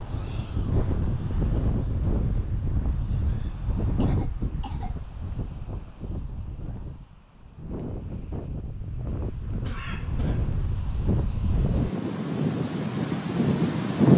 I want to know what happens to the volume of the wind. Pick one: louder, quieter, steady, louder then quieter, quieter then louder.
quieter then louder.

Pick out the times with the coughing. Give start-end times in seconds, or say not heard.
4.0-5.0, 9.6-10.5.